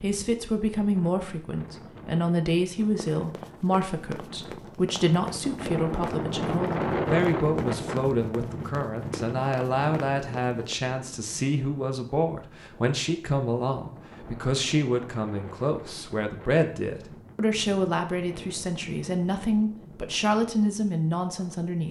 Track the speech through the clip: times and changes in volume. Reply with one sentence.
You can hear the speech from 0.0 to 21.8 s, at a steady volume.